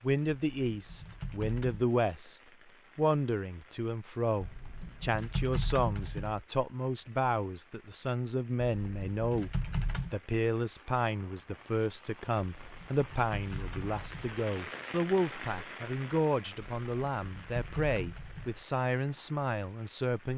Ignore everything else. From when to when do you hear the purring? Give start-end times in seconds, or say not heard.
not heard.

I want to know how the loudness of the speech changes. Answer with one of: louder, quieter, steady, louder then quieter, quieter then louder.
steady.